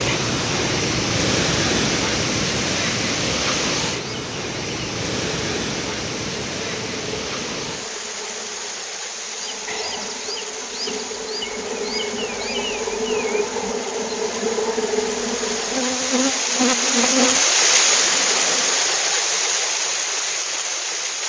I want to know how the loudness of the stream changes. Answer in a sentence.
The loudness of the stream goes down, then up.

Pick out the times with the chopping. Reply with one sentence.
You can't hear the chopping here.